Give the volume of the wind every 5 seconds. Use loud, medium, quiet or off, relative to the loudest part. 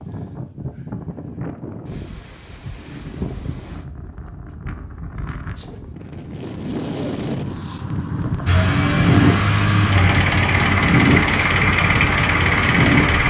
quiet, loud, loud.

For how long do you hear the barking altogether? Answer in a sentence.
The barking can't be heard in this clip.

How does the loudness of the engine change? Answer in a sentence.
The loudness of the engine stays about the same.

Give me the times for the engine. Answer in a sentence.
The engine can be heard from 8.4 to 13.2 s.